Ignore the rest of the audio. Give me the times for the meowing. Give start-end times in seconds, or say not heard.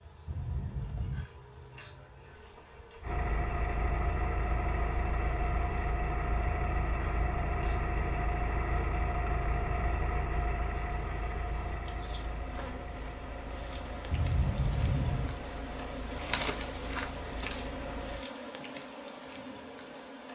0.2-1.2, 14.1-15.4.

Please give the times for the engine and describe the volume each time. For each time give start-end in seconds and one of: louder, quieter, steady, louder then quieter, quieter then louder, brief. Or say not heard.
3.0-18.2 quieter.